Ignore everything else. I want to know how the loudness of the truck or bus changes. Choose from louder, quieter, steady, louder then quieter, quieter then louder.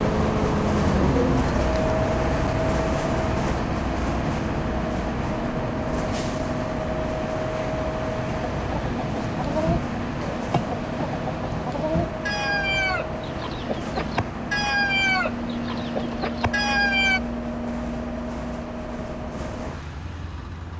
quieter.